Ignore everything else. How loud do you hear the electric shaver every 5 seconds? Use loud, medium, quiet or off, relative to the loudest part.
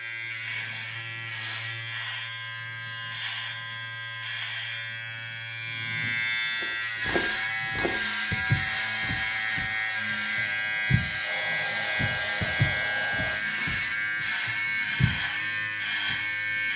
medium, loud, loud, loud.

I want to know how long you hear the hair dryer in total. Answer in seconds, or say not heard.
5 s.